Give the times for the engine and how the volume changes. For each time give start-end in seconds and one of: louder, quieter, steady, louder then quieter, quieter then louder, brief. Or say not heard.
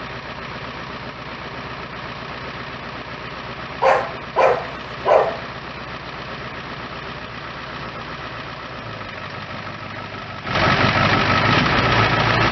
0.0-12.4 louder.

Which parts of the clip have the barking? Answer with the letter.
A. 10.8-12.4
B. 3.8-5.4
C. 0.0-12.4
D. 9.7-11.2
B.